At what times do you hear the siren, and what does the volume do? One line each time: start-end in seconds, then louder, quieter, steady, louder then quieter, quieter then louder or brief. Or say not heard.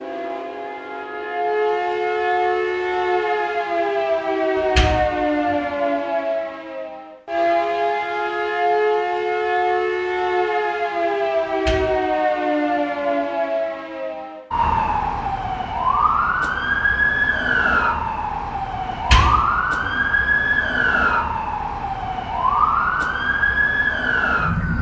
0.0-24.7 steady.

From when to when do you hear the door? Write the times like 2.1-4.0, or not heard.
4.5-5.7, 11.5-11.9, 18.9-20.0.